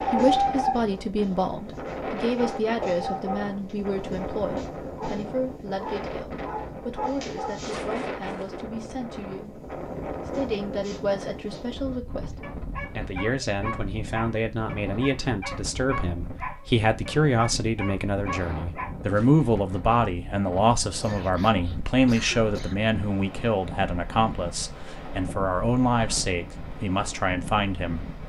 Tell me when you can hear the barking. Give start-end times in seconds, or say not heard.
0.0-3.5, 4.5-7.8, 10.3-18.9.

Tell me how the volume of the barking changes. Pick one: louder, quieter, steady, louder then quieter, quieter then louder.
quieter.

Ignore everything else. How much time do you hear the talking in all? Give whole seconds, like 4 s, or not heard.
28 s.